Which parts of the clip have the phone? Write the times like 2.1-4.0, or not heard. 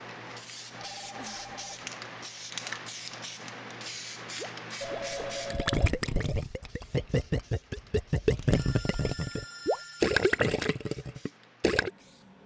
0.8-1.9, 4.8-6.0, 8.5-10.4.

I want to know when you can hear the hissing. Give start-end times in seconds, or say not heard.
0.0-12.4.